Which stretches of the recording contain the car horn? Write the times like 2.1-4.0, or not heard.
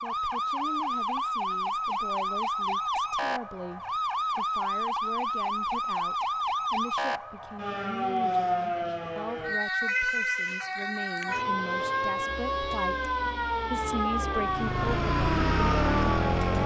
not heard.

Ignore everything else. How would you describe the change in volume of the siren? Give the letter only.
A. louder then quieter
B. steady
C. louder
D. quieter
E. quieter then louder
B.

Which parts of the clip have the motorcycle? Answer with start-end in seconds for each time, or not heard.
14.3-16.6.